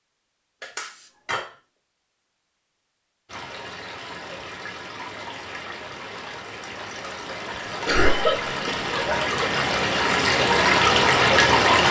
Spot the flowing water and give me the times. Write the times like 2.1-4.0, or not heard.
3.2-11.8.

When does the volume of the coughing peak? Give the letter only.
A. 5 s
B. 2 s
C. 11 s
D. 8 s
D.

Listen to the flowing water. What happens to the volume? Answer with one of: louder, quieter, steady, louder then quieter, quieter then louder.
louder.